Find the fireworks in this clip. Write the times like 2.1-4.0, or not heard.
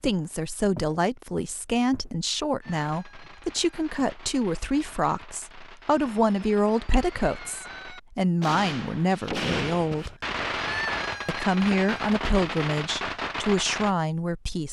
2.6-13.9.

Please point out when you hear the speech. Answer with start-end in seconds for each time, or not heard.
0.0-10.1, 11.2-14.6.